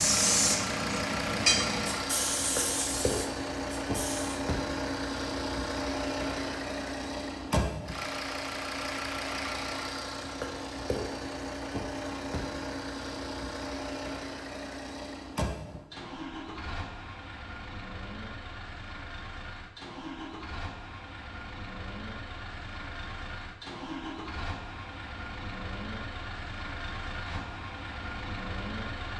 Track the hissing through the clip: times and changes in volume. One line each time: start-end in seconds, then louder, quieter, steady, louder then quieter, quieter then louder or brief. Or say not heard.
0.0-4.4 quieter.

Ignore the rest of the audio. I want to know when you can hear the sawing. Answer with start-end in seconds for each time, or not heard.
not heard.